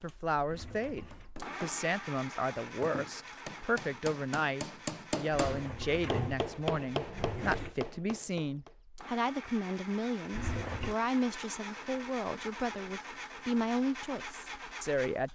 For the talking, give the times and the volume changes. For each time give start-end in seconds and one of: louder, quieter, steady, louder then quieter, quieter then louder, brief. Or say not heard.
0.0-15.3 steady.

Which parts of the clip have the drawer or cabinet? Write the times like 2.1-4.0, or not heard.
0.5-1.3, 5.3-7.8, 10.3-10.9.